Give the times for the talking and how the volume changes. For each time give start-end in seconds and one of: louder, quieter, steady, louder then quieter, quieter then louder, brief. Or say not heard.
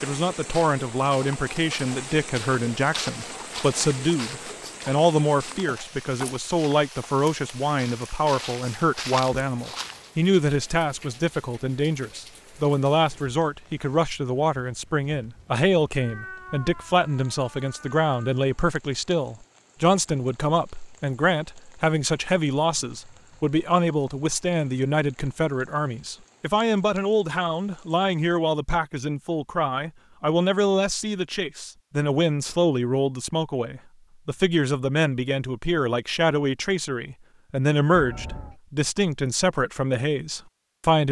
0.0-41.0 steady.